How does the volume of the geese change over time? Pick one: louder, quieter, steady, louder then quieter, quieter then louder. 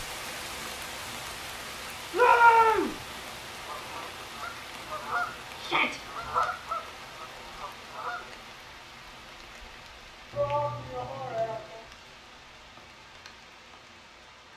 louder then quieter.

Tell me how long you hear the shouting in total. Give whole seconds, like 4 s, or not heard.
3 s.